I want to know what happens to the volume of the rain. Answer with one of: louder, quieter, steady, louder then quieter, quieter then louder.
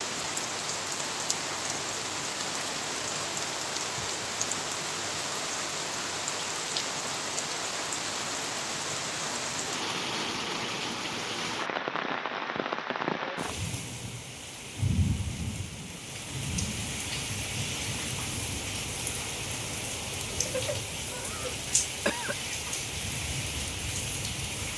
steady.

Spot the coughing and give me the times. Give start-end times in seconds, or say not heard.
20.4-22.4.